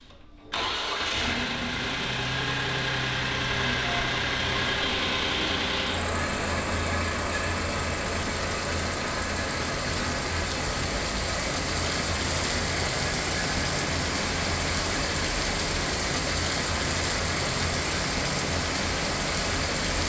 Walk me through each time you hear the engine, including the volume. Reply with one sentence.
You can hear the engine from 0.0 to 20.0 s, getting quieter.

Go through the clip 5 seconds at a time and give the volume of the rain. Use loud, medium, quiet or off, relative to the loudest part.
off, medium, loud, loud.